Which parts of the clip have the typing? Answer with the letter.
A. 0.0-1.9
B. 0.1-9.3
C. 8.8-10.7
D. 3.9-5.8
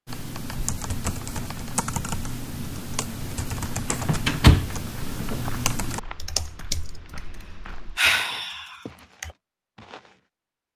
B.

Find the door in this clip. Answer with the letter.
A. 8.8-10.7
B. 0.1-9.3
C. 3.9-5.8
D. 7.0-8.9
C.